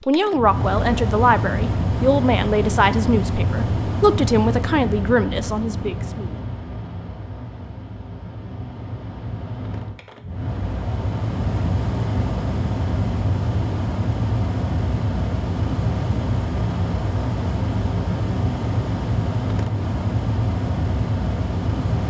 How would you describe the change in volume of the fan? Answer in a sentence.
The volume of the fan goes down, then up.